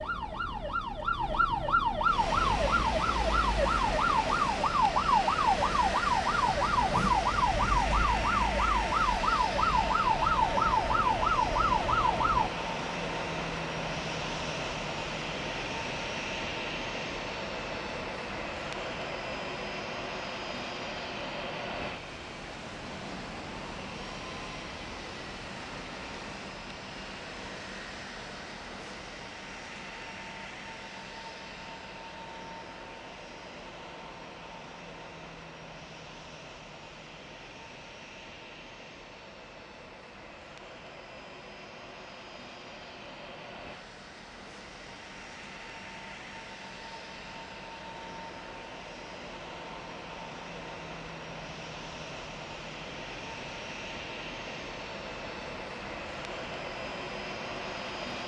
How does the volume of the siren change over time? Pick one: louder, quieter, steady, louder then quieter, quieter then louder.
steady.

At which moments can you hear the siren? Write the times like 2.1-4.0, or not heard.
0.0-12.5.